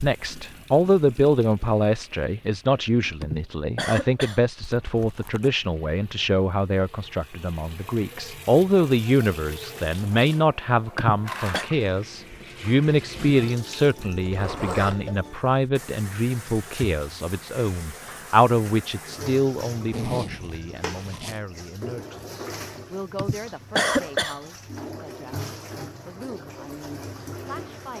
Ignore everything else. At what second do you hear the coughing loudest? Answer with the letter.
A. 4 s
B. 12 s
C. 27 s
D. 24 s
D.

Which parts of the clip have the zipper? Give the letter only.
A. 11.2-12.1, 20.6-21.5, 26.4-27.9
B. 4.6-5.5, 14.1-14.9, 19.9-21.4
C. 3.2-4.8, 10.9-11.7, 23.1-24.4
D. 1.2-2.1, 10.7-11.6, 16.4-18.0
B.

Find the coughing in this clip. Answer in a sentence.
The coughing can be heard from 3.2 to 4.8 s, from 10.9 to 11.7 s and from 23.1 to 24.4 s.